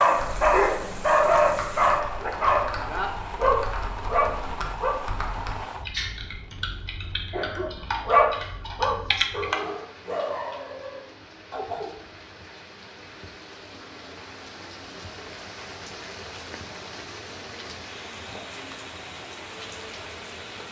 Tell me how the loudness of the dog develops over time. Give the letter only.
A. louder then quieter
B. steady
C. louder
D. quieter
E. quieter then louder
D.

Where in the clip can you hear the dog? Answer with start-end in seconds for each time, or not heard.
0.0-5.0, 7.5-12.0.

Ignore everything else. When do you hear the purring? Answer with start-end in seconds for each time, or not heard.
not heard.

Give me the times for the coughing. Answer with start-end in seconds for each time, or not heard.
7.3-8.2.